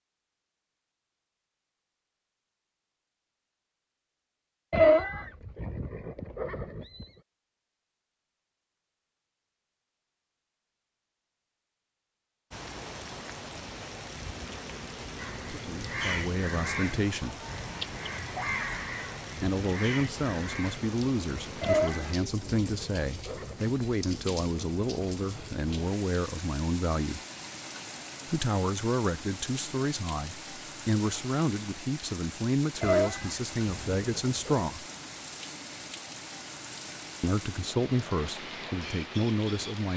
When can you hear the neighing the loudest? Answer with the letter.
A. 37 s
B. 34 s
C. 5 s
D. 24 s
C.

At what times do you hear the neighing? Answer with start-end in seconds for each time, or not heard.
4.7-7.1, 21.6-23.8, 32.8-34.7.